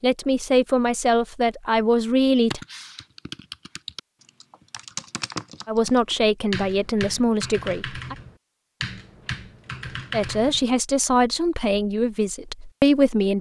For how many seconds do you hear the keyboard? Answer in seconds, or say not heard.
8 s.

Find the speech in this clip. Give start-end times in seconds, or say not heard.
0.0-2.6, 5.7-8.2, 10.1-13.3.